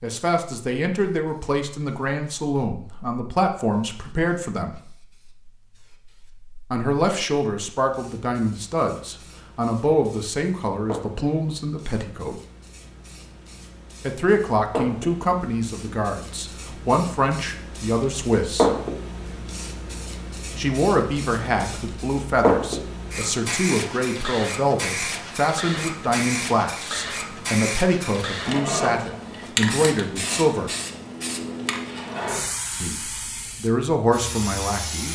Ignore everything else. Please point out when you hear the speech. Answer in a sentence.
The speech can be heard from 0.0 to 4.8 s, from 6.7 to 12.3 s, from 14.0 to 18.7 s, from 20.6 to 30.7 s and from 32.8 to 35.1 s.